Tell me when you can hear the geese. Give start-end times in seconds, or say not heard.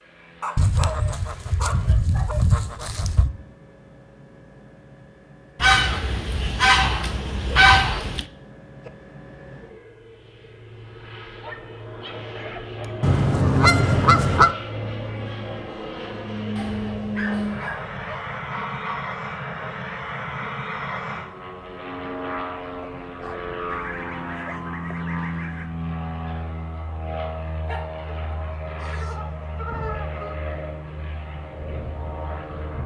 0.6-3.3, 5.6-8.2, 13.0-14.5, 18.1-19.1, 23.6-25.7, 28.2-30.4.